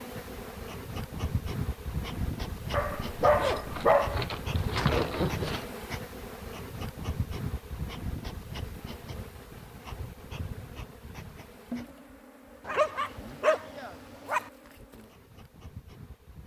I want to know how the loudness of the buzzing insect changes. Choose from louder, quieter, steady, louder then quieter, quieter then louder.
quieter.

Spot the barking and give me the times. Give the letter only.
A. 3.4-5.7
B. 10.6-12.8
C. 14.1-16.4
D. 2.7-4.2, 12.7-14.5
D.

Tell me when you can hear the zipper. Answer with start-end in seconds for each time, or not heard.
3.4-5.7.